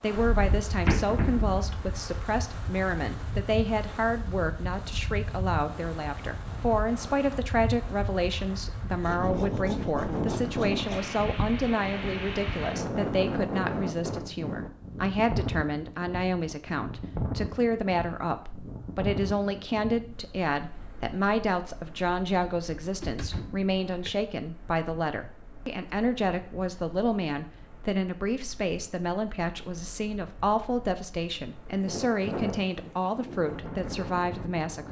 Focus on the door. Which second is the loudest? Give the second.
1 s.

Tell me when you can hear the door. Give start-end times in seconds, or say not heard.
0.1-1.6, 22.9-24.1.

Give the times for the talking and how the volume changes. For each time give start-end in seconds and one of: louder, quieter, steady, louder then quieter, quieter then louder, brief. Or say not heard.
0.0-34.8 steady.